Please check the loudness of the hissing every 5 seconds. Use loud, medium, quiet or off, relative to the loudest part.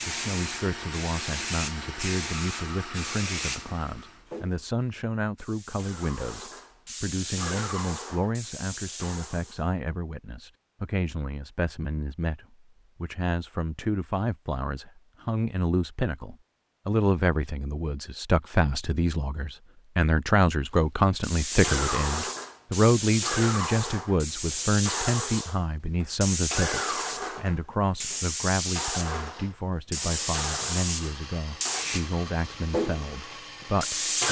medium, medium, off, off, loud, loud, loud.